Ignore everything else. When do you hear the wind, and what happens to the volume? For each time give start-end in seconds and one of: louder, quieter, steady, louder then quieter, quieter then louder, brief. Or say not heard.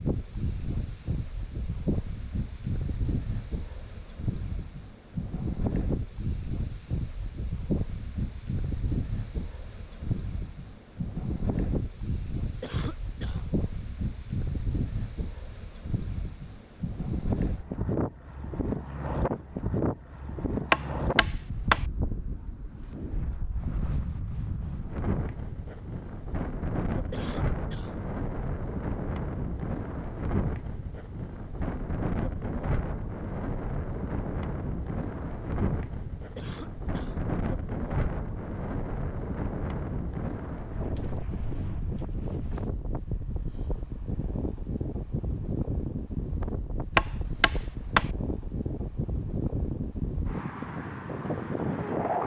0.0-52.2 steady.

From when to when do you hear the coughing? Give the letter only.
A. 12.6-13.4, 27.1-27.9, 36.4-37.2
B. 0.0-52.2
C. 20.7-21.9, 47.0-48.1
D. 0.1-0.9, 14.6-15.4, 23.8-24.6
A.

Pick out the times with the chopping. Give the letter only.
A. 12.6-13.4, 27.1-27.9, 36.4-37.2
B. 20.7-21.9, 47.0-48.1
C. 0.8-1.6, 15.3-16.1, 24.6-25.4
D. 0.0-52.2
B.